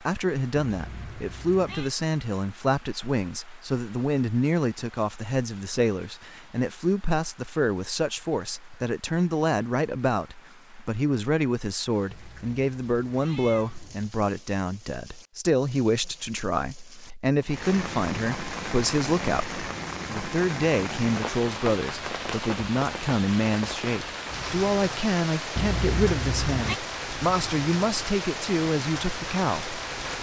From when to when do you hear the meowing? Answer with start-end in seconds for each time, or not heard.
0.7-1.9, 12.1-14.1, 25.6-26.8.